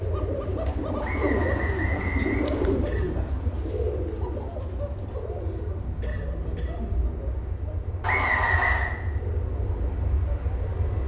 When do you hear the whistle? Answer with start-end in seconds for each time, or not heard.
1.0-2.8, 8.0-8.9.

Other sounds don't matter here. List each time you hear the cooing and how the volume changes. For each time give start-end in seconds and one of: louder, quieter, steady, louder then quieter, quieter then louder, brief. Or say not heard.
0.0-11.0 quieter.